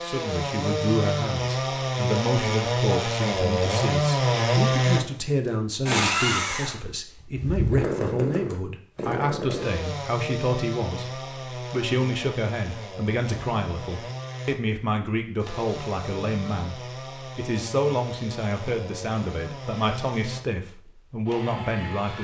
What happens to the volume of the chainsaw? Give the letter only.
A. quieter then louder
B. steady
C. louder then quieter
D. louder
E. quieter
E.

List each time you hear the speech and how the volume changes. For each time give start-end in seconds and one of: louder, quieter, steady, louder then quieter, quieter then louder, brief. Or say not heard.
0.0-22.1 steady.